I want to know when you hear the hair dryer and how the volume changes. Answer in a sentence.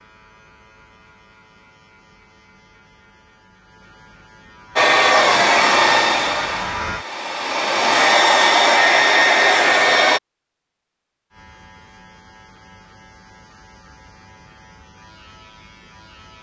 You can hear the hair dryer from 4.8 to 10.2 s, getting quieter then louder.